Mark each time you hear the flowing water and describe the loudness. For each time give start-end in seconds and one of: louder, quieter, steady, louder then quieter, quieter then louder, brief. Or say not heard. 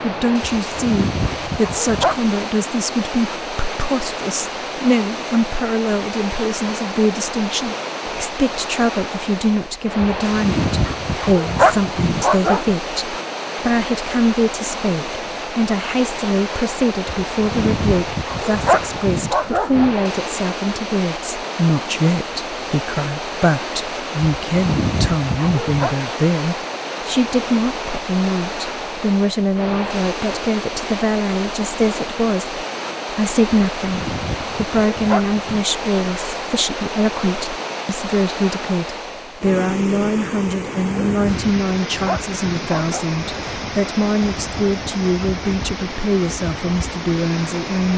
0.0-47.9 steady.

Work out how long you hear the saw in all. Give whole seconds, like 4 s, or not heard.
not heard.